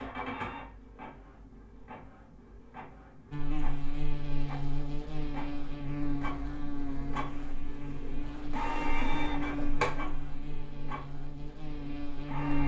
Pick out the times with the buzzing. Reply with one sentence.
The buzzing can be heard from 3.3 to 12.6 s.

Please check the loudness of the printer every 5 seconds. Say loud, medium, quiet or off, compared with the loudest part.
medium, loud, medium.